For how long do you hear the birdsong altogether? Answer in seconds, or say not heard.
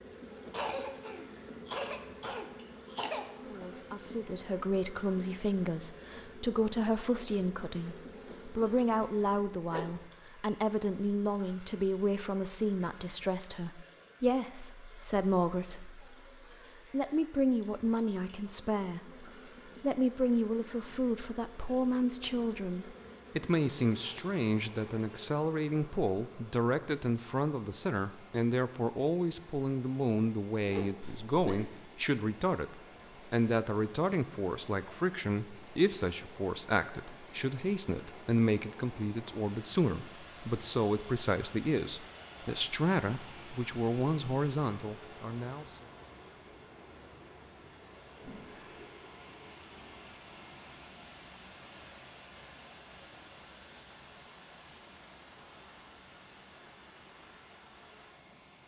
not heard.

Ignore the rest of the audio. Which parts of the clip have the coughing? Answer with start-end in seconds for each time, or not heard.
0.5-3.2, 31.0-31.6.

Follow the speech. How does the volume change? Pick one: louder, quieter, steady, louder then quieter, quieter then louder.
steady.